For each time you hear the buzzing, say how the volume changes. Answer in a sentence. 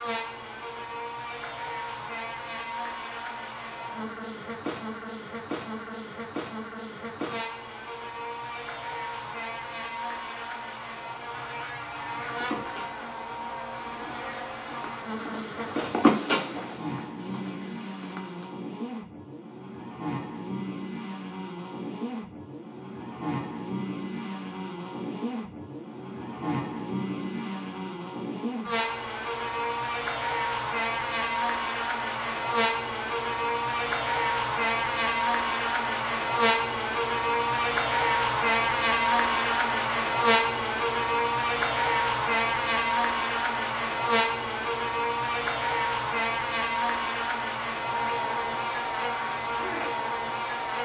You can hear the buzzing from 0.0 to 50.8 s, getting louder.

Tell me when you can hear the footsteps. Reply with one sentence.
You can hear the footsteps from 12.1 to 18.5 s.